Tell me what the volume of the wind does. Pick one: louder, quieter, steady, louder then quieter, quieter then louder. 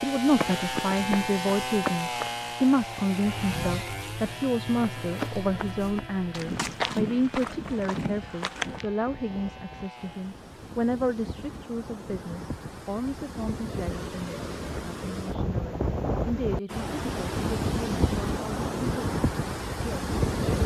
louder.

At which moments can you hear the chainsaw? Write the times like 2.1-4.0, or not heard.
0.0-10.4.